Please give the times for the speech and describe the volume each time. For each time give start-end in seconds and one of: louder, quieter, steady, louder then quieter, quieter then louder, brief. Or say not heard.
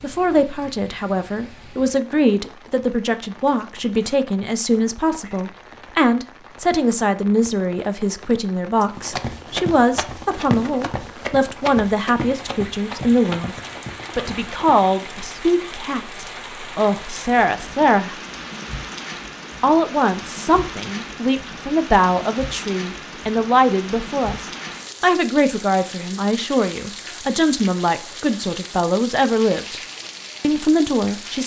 0.0-18.2 steady
19.6-29.8 steady
30.4-31.4 brief.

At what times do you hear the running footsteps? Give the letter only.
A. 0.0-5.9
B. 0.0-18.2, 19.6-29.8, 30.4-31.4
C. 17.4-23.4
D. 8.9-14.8
D.